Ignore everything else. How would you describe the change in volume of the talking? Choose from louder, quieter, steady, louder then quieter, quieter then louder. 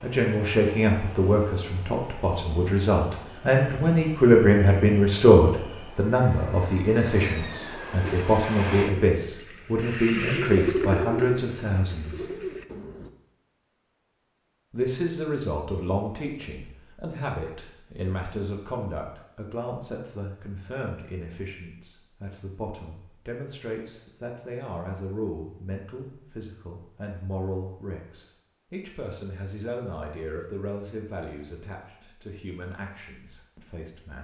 quieter.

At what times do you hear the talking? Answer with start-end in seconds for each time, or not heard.
0.0-12.2, 14.7-34.1.